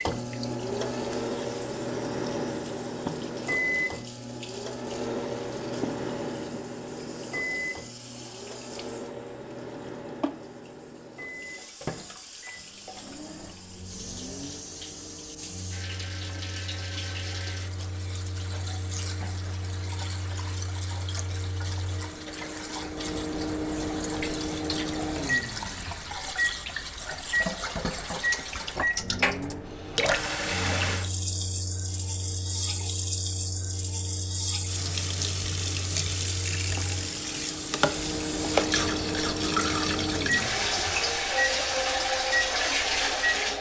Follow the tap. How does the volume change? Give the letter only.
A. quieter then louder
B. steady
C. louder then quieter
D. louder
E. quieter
D.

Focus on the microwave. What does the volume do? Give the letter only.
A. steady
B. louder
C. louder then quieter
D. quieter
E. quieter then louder
E.